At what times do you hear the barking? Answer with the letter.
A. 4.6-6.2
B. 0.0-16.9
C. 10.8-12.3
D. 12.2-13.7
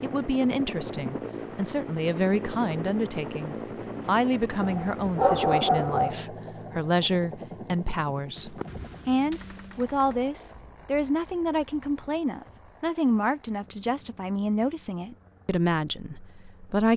A.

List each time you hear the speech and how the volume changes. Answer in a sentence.
The speech can be heard from 0.0 to 16.9 s, at a steady volume.